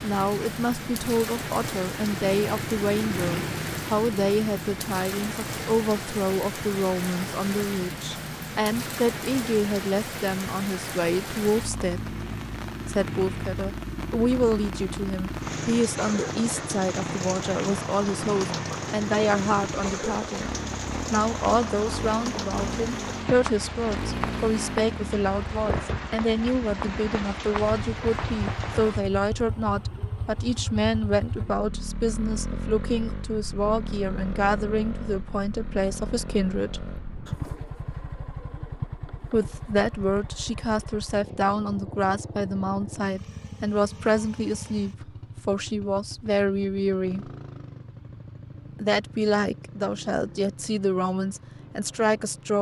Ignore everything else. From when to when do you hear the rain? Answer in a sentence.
You can hear the rain from 0.0 to 29.1 s.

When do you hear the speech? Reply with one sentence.
The speech can be heard from 0.0 to 12.2 s, from 12.8 to 36.8 s, from 39.3 to 47.3 s and from 48.8 to 52.5 s.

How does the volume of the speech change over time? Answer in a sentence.
The volume of the speech stays about the same.